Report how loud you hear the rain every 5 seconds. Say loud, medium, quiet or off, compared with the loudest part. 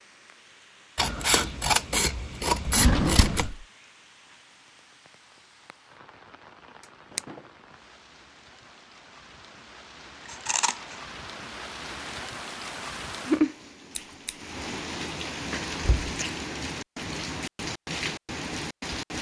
quiet, quiet, loud, loud.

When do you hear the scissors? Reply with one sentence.
You can hear the scissors from 0.9 to 3.5 s, from 10.2 to 10.9 s and from 13.9 to 14.5 s.